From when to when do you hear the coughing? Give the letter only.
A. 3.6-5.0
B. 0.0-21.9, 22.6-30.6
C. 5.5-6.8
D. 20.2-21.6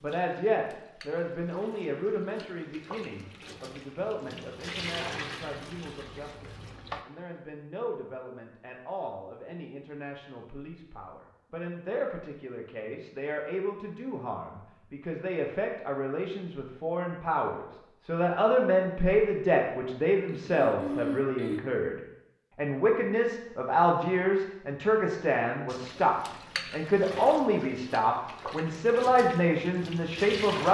D.